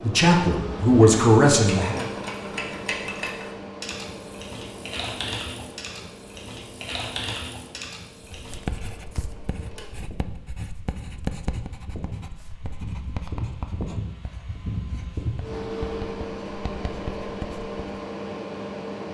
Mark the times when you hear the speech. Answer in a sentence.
The speech can be heard from 0.0 to 2.0 s.